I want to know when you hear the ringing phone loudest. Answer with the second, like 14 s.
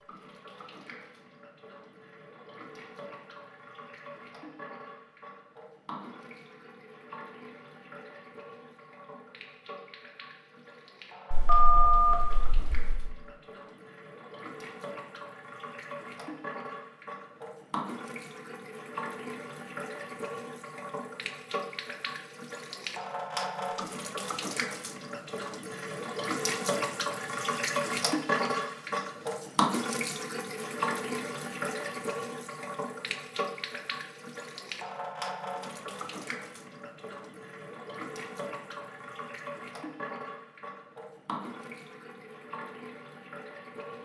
12 s.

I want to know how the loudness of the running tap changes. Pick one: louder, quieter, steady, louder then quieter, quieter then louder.
louder then quieter.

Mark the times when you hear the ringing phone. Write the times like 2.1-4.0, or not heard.
11.3-13.0.